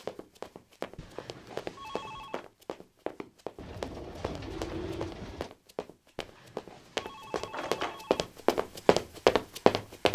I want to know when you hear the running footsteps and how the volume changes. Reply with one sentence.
You can hear the running footsteps from 0.0 to 10.1 s, getting louder.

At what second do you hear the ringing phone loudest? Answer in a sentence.
The volume of the ringing phone peaks at 8 seconds.